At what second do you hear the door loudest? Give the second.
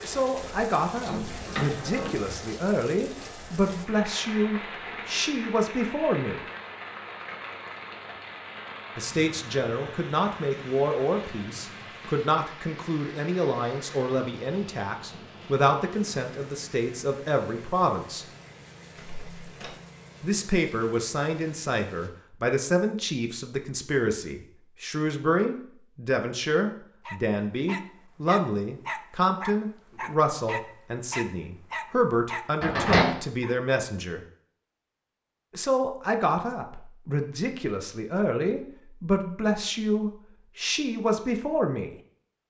33 s.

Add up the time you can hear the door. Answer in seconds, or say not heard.
3 s.